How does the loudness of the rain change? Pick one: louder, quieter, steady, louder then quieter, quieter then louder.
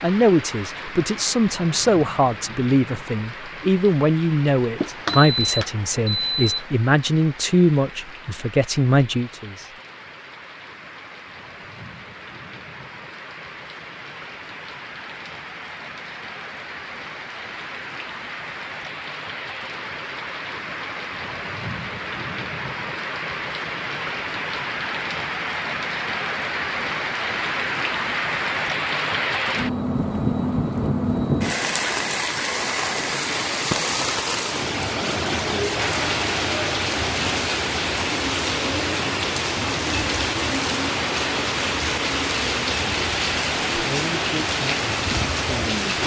louder.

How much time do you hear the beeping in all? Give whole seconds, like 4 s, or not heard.
2 s.